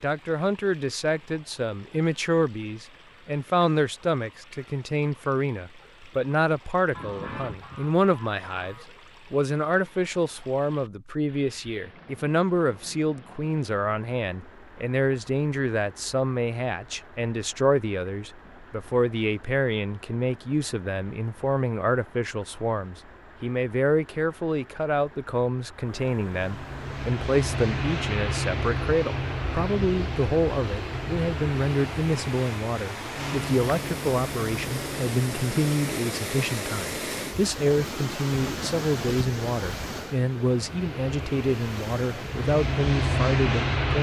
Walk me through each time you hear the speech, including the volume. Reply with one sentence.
You can hear the speech from 0.0 to 43.9 s, at a steady volume.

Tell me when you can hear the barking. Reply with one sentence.
The barking can't be heard in this clip.